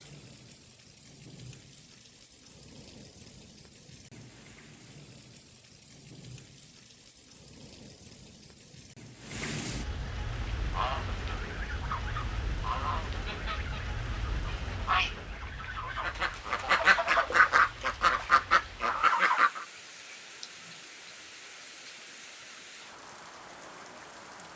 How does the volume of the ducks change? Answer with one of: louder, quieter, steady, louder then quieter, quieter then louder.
louder.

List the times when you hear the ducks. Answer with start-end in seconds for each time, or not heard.
10.6-19.6.